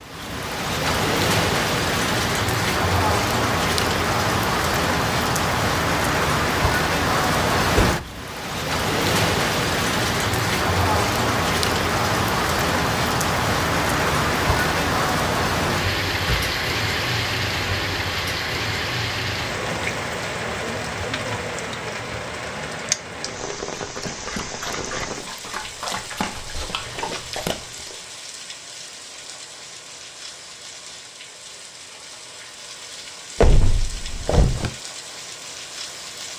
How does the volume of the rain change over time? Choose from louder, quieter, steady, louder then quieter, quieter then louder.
quieter.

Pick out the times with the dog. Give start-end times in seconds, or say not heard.
23.6-27.9.